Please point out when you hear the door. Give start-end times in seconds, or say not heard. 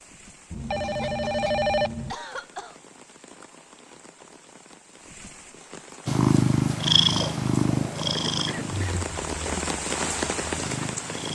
not heard.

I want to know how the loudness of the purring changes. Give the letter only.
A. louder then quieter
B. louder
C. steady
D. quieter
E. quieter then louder
E.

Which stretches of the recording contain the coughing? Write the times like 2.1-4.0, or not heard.
0.8-2.8, 8.2-9.7.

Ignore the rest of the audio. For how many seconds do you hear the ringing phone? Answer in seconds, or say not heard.
2 s.